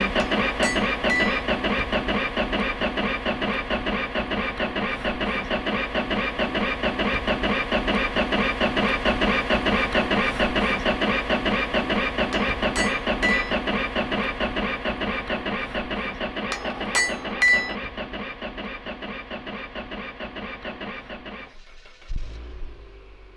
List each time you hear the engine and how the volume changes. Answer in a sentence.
You can hear the engine from 0.0 to 23.3 s, getting quieter.